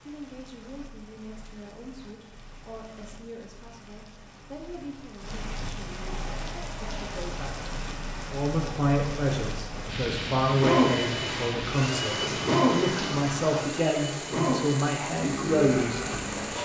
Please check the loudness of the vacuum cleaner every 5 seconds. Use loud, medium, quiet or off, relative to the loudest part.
off, off, loud, medium.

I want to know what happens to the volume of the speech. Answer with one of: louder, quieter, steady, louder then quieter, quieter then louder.
louder.